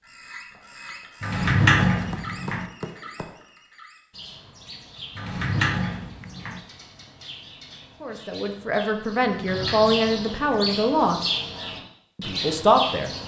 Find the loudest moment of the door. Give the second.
2 s.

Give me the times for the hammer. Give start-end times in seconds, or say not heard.
1.9-3.5.